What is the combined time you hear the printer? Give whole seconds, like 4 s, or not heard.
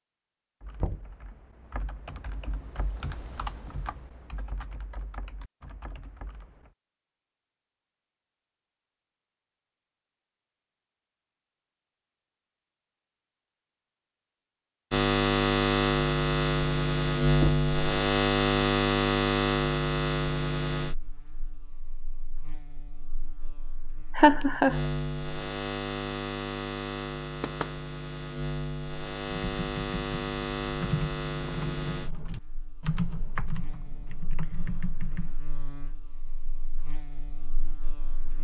not heard.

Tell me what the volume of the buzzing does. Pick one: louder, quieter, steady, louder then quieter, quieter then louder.
quieter.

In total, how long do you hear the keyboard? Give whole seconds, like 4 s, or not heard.
12 s.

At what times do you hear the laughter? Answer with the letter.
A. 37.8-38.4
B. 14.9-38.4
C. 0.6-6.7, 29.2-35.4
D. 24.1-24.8
D.